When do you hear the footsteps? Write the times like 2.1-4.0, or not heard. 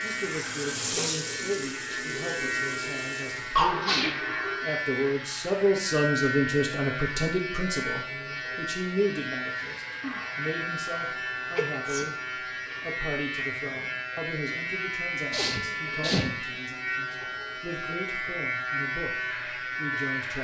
not heard.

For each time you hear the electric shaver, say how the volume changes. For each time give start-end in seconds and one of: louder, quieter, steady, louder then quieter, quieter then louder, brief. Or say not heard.
0.0-20.4 steady.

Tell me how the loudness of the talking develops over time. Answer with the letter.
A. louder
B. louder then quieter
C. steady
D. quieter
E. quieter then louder
B.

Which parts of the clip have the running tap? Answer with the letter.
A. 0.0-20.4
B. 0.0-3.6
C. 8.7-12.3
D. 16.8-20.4
B.